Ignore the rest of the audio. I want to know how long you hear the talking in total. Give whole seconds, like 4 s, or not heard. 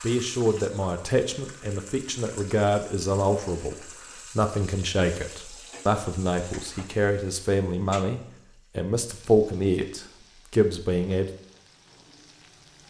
11 s.